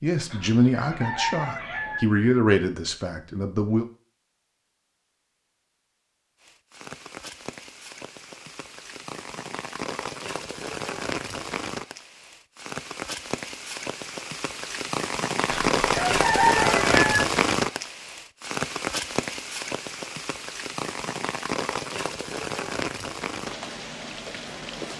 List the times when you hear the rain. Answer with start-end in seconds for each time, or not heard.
6.4-24.9.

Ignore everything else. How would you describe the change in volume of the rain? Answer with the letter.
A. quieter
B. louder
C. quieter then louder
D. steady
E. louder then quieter
E.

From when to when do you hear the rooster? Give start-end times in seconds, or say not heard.
0.2-2.0, 15.4-17.2.